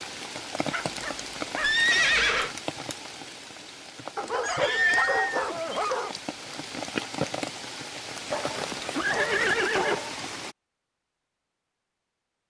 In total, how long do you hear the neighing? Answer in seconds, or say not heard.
4 s.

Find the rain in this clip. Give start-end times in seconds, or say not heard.
0.0-10.6.